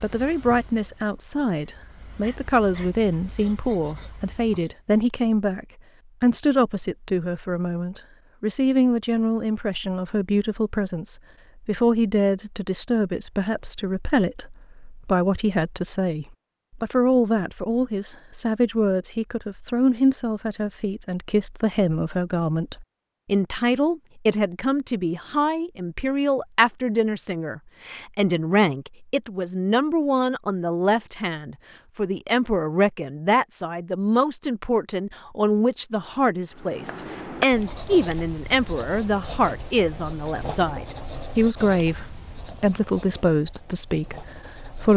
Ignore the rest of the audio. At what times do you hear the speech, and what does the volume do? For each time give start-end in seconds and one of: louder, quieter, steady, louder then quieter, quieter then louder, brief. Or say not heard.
0.0-44.9 steady.